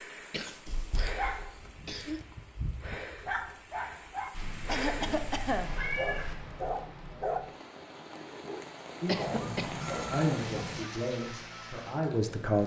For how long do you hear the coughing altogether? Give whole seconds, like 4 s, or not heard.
4 s.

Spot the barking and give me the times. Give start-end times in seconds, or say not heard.
1.0-10.8.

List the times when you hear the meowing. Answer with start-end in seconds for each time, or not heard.
0.7-1.4, 4.3-6.3, 9.2-10.8.